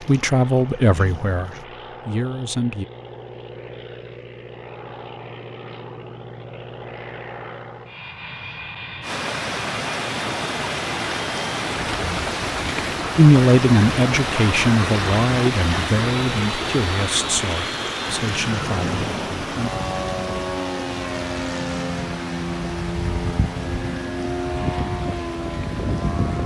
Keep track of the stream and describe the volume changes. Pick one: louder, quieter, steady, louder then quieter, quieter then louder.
quieter.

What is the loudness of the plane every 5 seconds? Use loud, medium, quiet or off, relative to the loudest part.
quiet, medium, medium, loud, loud, loud.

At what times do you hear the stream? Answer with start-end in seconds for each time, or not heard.
9.0-26.4.